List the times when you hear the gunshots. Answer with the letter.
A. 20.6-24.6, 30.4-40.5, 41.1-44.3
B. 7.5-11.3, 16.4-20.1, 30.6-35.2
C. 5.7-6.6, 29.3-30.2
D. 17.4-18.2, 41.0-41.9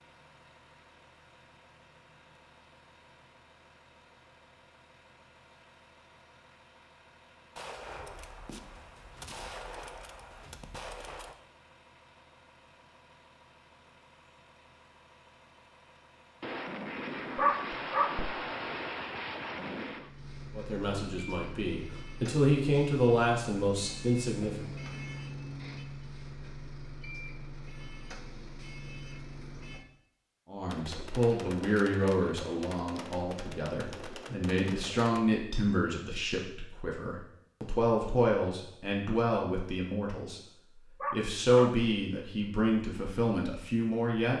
B.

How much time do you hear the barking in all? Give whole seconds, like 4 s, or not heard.
2 s.